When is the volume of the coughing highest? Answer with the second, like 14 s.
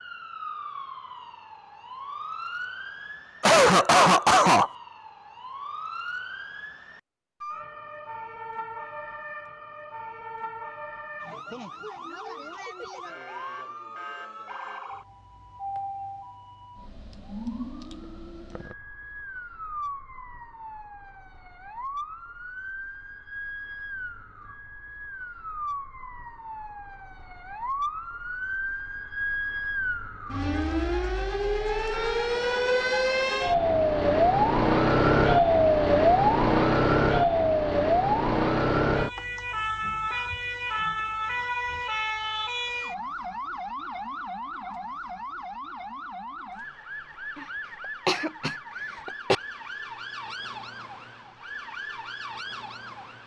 4 s.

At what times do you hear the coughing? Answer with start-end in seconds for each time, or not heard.
3.4-4.7, 48.0-49.4.